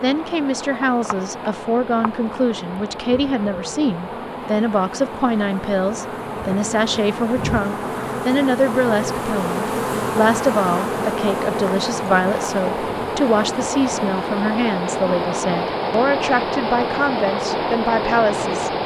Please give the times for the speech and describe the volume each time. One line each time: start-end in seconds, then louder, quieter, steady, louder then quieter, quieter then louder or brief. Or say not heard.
0.0-18.7 steady.